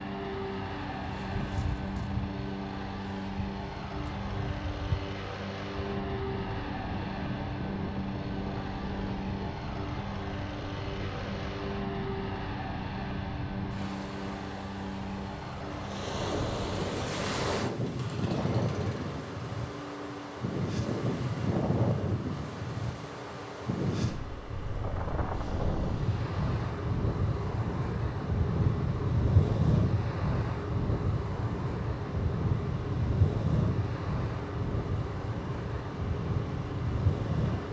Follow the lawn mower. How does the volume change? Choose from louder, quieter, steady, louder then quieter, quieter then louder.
quieter.